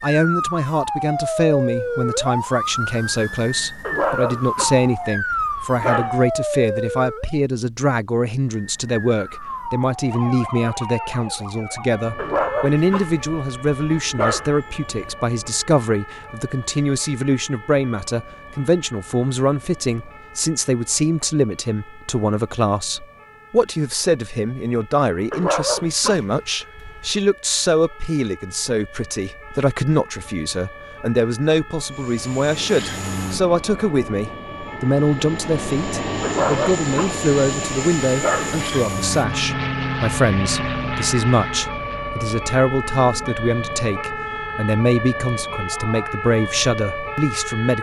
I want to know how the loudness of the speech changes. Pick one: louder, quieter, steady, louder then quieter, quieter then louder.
steady.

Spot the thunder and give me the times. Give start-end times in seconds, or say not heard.
not heard.